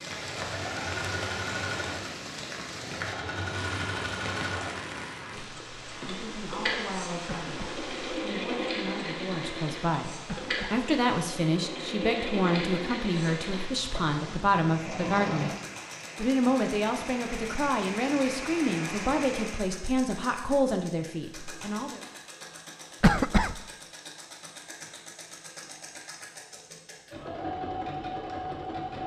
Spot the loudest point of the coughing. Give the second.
23 s.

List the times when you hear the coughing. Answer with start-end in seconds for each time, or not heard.
7.2-7.8, 10.2-10.8, 23.0-23.6.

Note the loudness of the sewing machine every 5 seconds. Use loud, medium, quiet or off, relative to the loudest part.
loud, loud, loud, loud, medium, loud.